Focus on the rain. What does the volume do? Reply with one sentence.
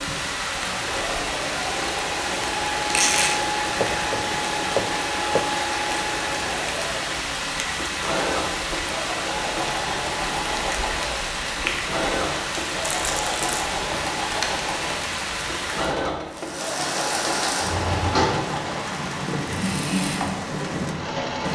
The volume of the rain stays about the same.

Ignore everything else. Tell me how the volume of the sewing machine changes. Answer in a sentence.
The loudness of the sewing machine stays about the same.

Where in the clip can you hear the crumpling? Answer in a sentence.
You can hear the crumpling from 2.8 to 3.4 s and from 12.8 to 13.7 s.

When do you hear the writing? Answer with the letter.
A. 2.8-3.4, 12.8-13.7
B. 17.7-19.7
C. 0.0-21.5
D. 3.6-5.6
D.